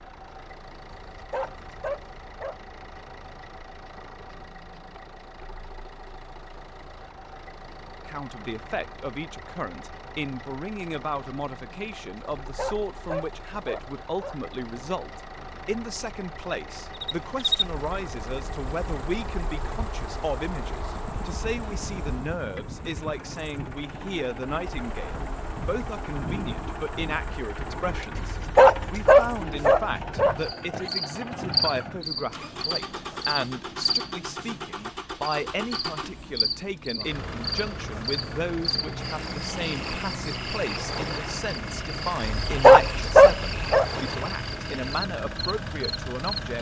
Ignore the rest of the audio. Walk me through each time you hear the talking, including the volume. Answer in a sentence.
The talking can be heard from 8.1 to 46.5 s, at a steady volume.